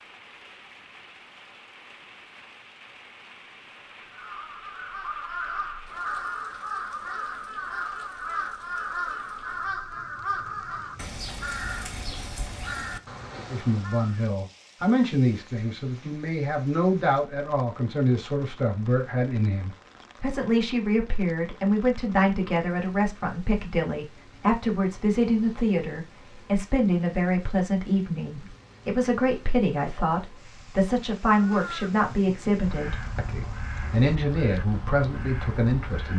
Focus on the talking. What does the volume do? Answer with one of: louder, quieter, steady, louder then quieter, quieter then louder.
steady.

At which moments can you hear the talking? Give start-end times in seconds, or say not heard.
13.5-36.1.